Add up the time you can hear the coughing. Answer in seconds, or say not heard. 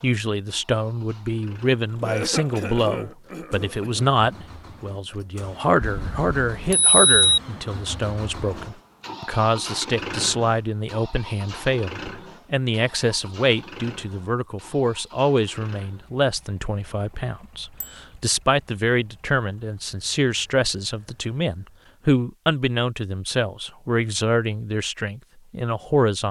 2 s.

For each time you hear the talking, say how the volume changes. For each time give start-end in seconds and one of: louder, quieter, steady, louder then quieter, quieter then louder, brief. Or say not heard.
0.0-26.2 steady.